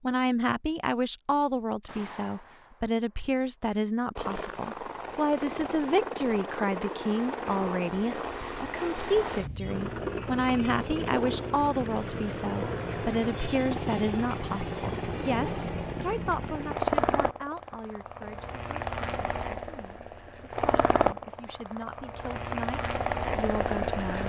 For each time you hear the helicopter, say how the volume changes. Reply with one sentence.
You can hear the helicopter from 4.2 to 24.2 s, at a steady volume.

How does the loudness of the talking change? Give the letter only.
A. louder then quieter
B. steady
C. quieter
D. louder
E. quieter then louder
C.